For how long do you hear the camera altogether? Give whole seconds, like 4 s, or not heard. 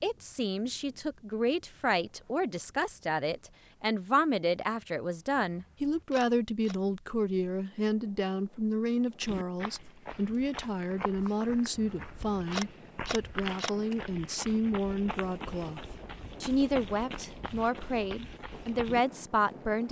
3 s.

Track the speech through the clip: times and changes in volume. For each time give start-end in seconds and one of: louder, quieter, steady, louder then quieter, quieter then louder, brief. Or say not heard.
0.0-19.8 steady.